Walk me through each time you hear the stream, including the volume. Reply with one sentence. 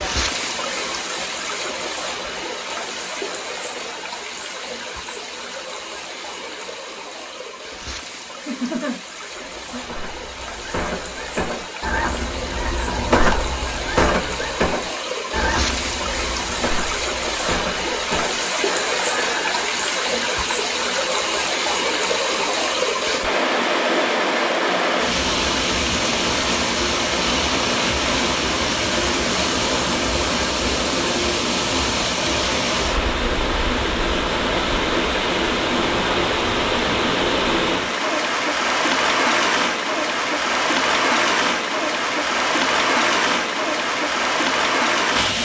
You can hear the stream from 0.0 to 45.3 s, getting louder.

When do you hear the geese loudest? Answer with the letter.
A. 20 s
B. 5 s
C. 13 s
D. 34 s
C.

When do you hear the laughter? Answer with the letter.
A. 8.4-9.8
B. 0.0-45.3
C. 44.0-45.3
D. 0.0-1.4
A.